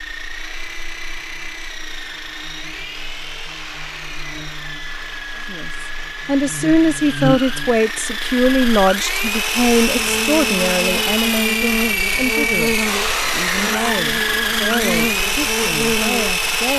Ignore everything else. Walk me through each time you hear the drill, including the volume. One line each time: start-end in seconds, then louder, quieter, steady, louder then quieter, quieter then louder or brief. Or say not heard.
0.0-16.7 louder.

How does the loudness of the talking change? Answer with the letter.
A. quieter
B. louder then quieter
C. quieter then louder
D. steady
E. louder
A.